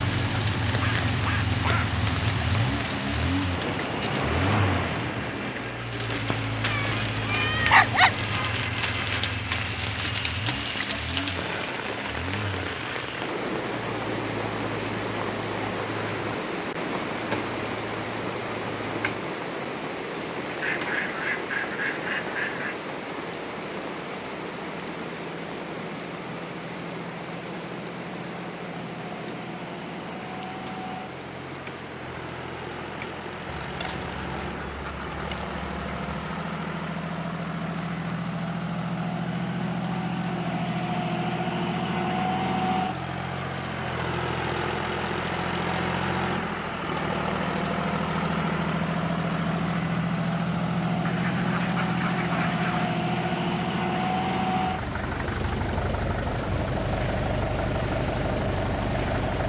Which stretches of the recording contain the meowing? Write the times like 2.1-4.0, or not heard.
6.7-8.3.